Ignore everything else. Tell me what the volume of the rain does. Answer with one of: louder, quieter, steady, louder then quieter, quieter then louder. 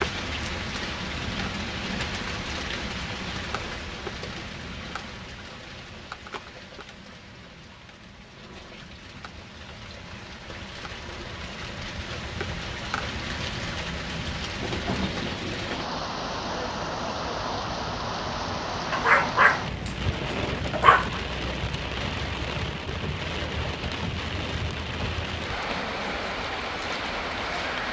quieter then louder.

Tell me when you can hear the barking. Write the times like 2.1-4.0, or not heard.
18.9-21.2.